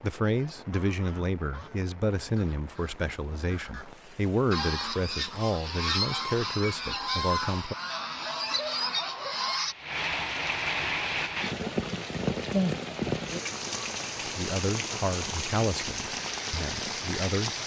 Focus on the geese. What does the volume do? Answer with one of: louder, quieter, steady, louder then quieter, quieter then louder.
louder.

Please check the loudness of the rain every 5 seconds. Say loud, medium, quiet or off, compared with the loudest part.
quiet, quiet, loud, loud.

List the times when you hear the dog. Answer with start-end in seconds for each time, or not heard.
7.8-9.6.